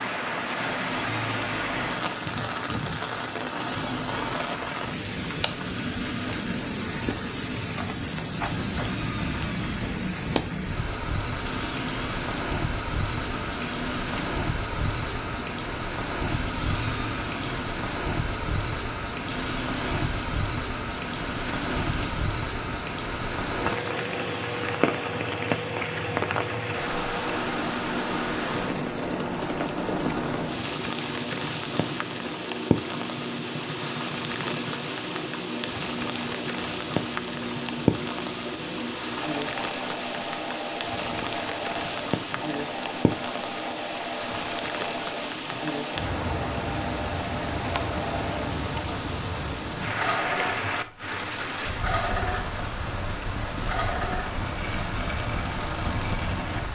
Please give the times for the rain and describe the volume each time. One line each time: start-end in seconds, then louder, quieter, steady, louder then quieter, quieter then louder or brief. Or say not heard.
0.0-56.6 steady.